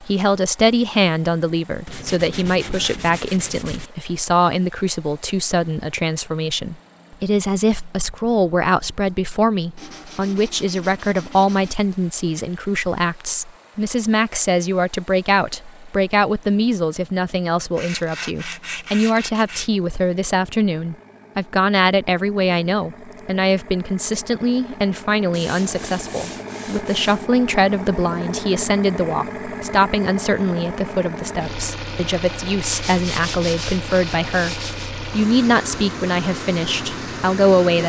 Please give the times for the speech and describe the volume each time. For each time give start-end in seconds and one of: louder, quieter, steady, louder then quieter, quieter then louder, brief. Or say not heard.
0.0-37.8 steady.